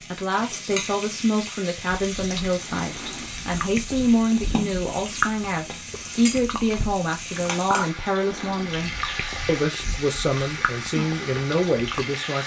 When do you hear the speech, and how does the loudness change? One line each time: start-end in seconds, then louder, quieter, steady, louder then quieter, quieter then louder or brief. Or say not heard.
0.0-12.4 steady.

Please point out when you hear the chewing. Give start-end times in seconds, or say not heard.
1.9-12.1.